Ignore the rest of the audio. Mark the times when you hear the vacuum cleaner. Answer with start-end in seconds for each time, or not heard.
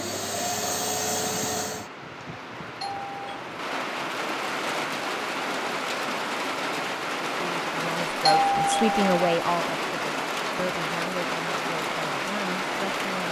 0.0-1.9.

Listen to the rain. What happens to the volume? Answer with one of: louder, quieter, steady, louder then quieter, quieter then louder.
louder.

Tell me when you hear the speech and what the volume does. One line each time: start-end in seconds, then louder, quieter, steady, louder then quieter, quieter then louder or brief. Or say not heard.
7.3-13.2 louder then quieter.